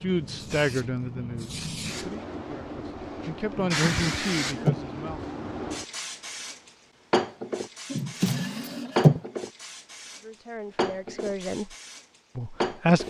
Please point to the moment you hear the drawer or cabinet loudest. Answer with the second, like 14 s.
9 s.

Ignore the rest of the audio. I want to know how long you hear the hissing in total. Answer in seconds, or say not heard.
13 s.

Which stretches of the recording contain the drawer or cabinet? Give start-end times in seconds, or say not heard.
3.5-4.8, 7.9-9.2.